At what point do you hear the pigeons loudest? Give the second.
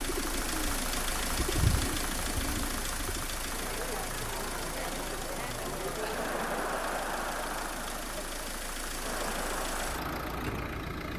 2 s.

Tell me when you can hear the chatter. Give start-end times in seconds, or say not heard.
3.5-11.1.